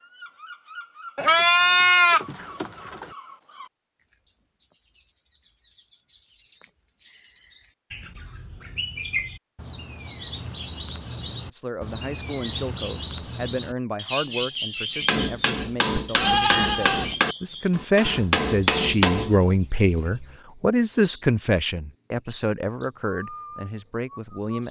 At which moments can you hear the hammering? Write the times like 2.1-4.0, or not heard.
15.0-19.4.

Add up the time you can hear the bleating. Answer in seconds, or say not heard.
3 s.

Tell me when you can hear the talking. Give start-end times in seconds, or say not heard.
11.5-24.6.